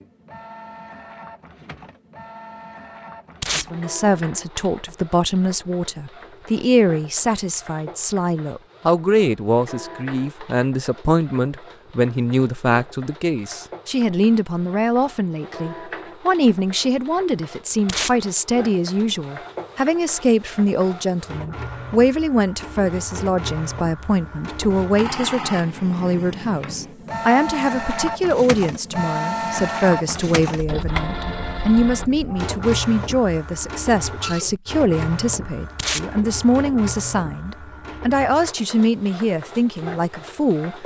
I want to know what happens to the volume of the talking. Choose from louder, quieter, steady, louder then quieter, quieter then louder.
steady.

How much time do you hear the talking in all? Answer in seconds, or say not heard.
37 s.